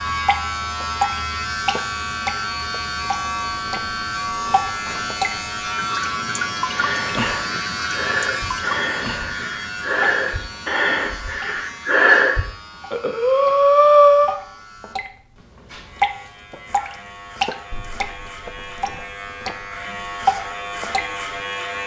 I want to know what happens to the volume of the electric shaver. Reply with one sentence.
The loudness of the electric shaver goes down, then up.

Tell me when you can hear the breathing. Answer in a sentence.
The breathing can be heard from 6.7 to 14.3 s.